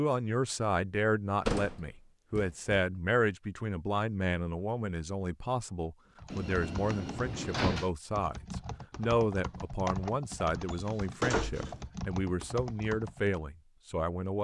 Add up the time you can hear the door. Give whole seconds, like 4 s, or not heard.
4 s.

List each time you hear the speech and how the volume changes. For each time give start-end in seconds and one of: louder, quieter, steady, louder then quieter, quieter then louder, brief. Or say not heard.
0.0-14.3 steady.